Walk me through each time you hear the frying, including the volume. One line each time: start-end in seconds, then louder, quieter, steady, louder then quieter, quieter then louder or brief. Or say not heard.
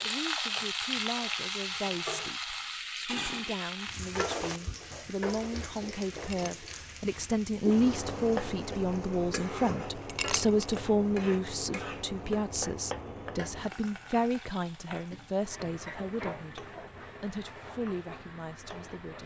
0.0-19.2 quieter.